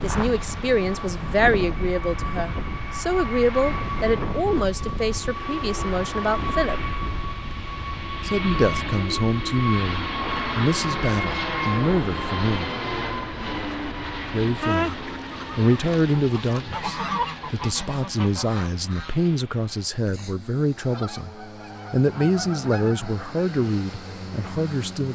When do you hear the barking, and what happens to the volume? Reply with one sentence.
The barking can't be heard in this clip.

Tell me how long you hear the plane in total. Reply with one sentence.
The plane can be heard for 25 seconds in total.